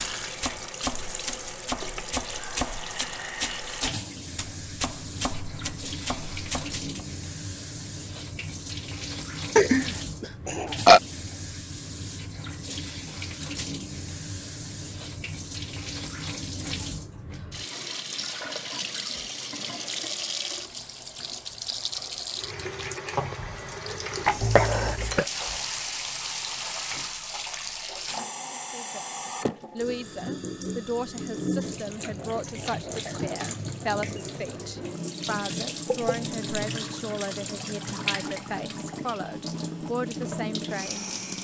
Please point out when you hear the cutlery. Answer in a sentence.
You can't hear the cutlery here.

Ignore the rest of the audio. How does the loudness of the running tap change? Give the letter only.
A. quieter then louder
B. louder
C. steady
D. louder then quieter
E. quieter
C.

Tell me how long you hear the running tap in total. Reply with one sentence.
You can hear the running tap for 41 seconds altogether.